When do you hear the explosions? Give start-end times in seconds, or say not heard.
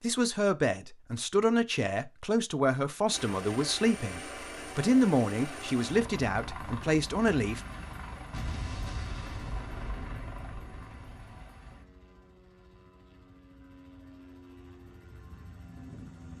8.3-11.4.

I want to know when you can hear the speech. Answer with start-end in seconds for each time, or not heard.
0.0-7.6.